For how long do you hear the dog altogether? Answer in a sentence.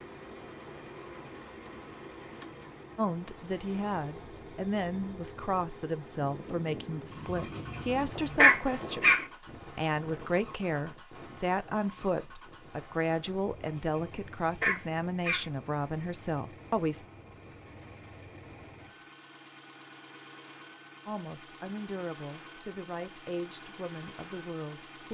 You can hear the dog for 4 seconds altogether.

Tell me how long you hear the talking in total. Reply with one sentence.
You can hear the talking for 18 seconds altogether.